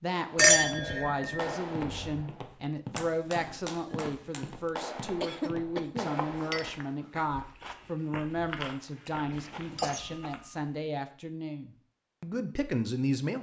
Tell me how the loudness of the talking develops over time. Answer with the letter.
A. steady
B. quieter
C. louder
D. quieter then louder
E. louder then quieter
A.